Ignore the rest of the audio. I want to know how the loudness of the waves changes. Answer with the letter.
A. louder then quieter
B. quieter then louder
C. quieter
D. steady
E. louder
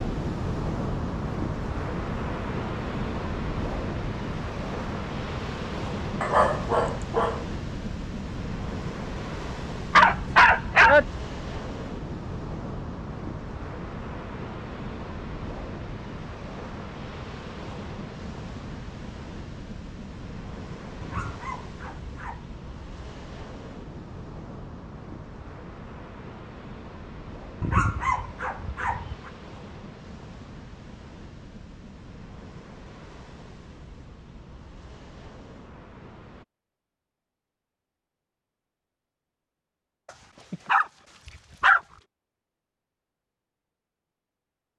C.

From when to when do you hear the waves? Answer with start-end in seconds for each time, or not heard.
0.0-36.5.